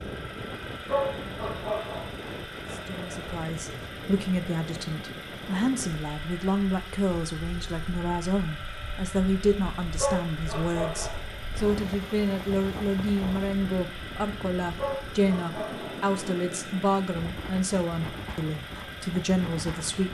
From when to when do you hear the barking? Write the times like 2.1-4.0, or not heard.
0.8-3.2, 9.9-11.3, 14.8-16.1.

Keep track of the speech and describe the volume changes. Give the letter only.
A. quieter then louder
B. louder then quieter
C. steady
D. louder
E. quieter
C.